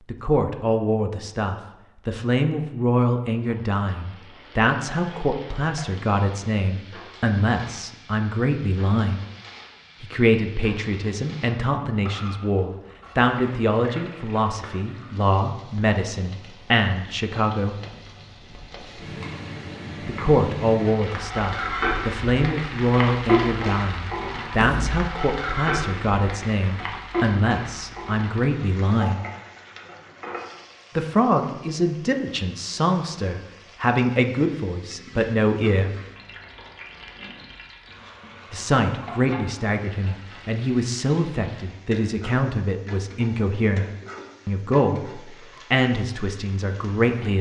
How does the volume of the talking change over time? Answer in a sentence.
The loudness of the talking stays about the same.